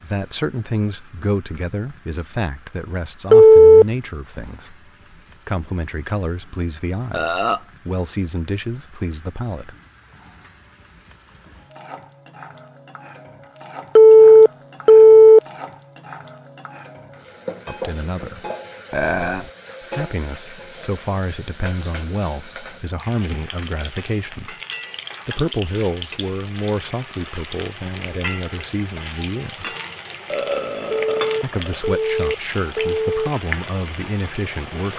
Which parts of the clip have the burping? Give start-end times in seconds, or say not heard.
7.1-7.7, 18.9-19.5, 30.3-31.8.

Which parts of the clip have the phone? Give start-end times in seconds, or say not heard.
3.3-3.9, 13.9-15.4, 30.9-33.3.